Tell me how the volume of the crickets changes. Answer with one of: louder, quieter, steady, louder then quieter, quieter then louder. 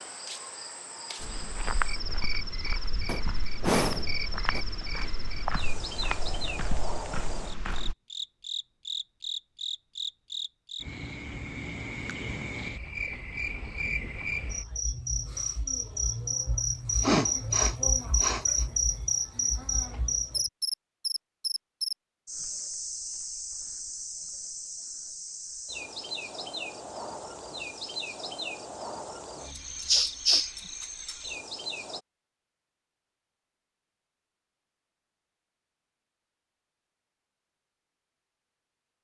louder then quieter.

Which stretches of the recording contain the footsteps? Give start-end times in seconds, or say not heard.
1.2-8.0.